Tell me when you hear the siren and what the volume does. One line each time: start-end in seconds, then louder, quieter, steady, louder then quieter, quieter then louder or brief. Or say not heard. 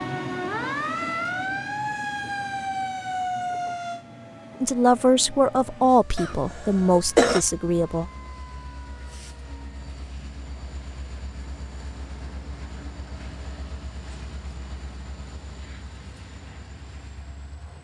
0.0-9.8 quieter.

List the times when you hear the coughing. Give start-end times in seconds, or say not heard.
6.2-7.4.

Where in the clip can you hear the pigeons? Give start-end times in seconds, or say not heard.
not heard.